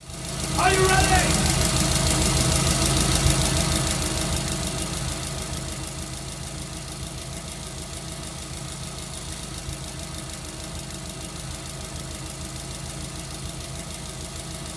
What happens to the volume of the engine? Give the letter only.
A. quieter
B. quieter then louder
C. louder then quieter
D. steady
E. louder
A.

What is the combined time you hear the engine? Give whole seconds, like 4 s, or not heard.
15 s.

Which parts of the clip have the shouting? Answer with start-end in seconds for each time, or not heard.
0.6-1.6.